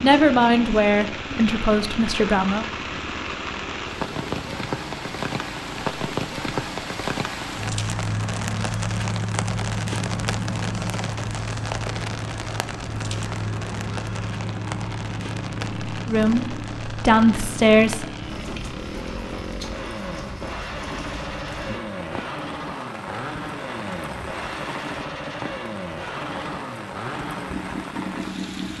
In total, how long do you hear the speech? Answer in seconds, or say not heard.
5 s.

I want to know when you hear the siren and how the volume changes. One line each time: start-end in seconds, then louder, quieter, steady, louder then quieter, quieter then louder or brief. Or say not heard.
not heard.